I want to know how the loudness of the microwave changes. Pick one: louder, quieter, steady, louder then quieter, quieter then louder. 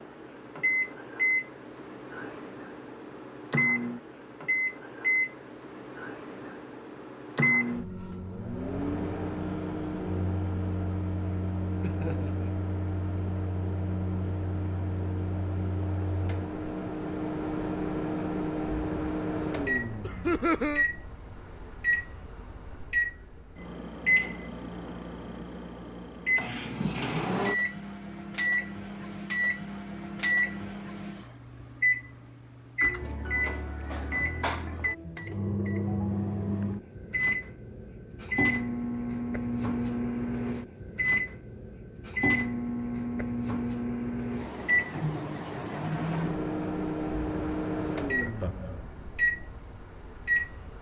steady.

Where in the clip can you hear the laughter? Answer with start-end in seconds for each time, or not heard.
11.8-12.5, 20.0-20.9, 48.2-48.8.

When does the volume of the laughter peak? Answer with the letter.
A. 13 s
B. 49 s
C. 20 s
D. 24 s
C.